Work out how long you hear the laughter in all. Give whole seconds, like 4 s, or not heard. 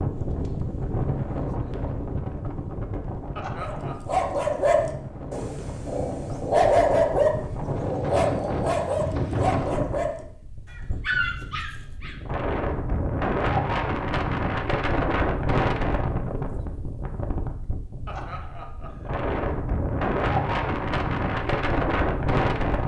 2 s.